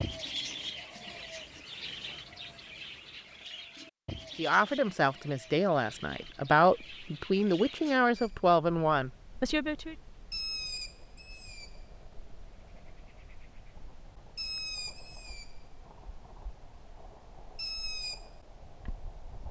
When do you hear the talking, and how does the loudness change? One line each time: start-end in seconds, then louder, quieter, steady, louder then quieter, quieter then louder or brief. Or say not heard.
4.3-9.9 steady.